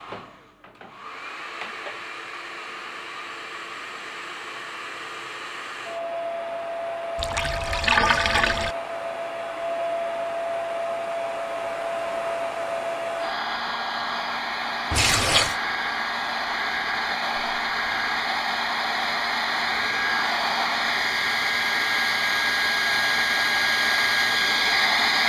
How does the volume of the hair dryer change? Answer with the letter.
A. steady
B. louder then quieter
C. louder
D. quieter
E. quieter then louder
C.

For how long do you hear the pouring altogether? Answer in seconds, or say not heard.
2 s.